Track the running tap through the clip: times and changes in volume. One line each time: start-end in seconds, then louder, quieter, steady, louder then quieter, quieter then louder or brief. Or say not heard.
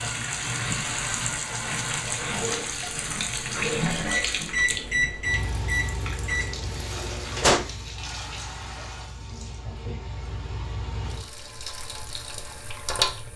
0.0-13.3 quieter.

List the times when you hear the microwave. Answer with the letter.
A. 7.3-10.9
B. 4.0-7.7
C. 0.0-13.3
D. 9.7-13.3
B.